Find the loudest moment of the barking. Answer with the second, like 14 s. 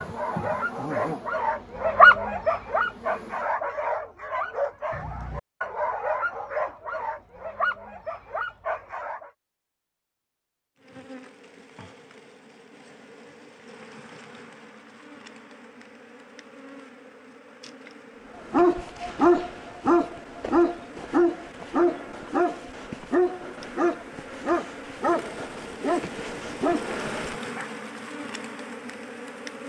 2 s.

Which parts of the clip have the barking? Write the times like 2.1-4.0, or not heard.
0.0-9.3, 18.5-27.6.